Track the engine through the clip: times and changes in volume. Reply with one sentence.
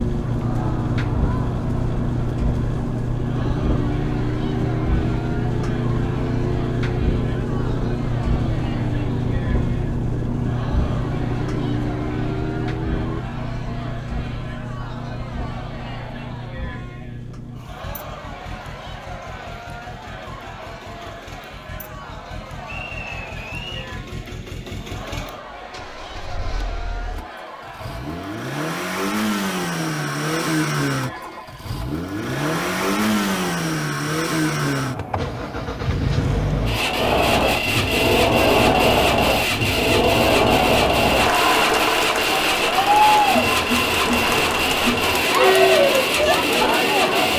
The engine can be heard from 0.0 to 47.3 s, getting quieter then louder.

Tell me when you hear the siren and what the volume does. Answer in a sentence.
You can hear the siren from 0.0 to 13.2 s, at a steady volume.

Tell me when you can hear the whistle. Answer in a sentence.
You can hear the whistle from 22.6 to 23.9 s.